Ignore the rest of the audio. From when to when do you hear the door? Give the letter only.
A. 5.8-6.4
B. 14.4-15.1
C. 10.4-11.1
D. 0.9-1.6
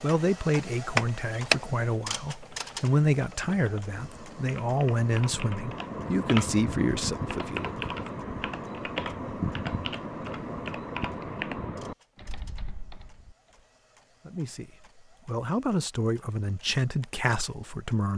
D.